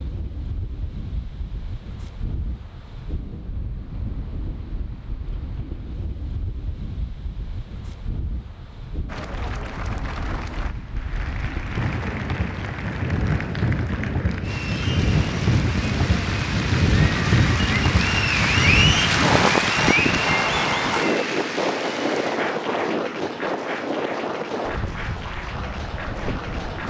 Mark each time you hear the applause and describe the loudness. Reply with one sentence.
The applause can be heard from 9.1 to 26.8 s, getting louder then quieter.